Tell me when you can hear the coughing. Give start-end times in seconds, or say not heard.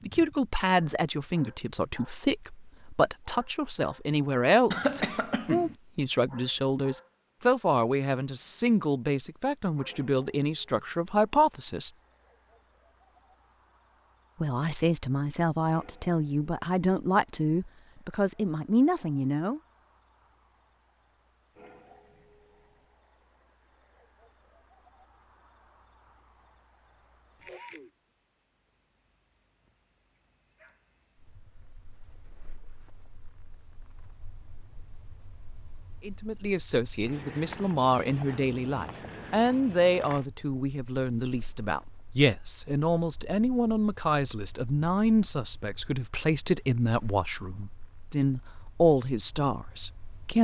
4.7-5.8.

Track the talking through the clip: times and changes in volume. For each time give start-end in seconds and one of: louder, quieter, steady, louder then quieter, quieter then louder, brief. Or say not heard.
0.1-11.9 steady
14.4-19.6 steady
36.0-50.3 steady.